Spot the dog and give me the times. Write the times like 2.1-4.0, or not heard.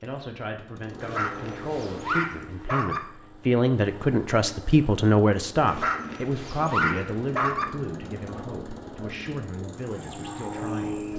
1.0-3.0, 5.7-7.7.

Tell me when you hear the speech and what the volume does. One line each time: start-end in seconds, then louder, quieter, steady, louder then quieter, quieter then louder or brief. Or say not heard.
0.0-11.1 louder then quieter.